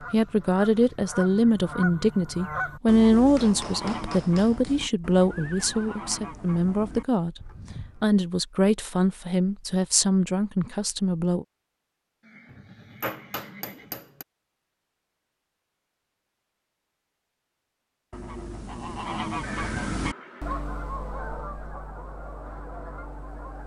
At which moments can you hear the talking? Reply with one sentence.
You can hear the talking from 0.1 to 11.4 s.